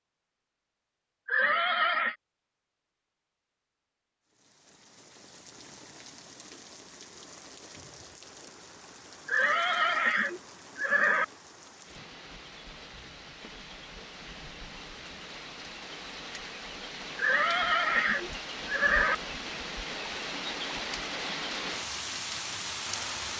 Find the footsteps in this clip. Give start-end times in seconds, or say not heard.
not heard.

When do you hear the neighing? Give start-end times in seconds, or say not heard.
1.2-2.1, 9.2-11.2, 17.1-19.1.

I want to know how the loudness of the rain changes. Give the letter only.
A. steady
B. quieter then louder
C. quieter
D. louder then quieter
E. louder
E.